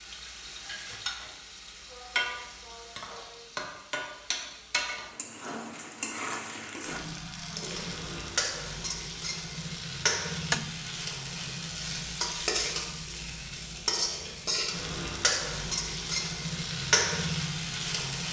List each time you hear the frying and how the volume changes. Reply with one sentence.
The frying can be heard from 0.0 to 18.2 s, getting louder.